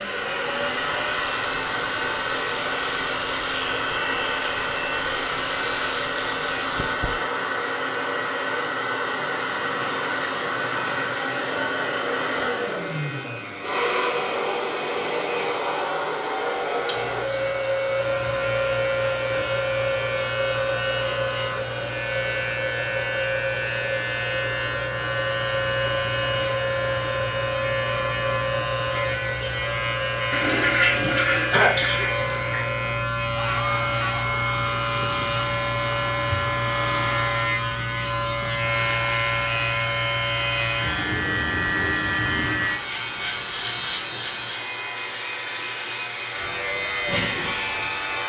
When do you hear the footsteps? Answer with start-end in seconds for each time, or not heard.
not heard.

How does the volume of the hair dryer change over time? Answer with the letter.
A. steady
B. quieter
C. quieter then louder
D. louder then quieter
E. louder
B.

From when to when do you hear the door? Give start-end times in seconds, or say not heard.
not heard.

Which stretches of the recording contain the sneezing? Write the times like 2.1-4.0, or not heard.
31.0-32.0.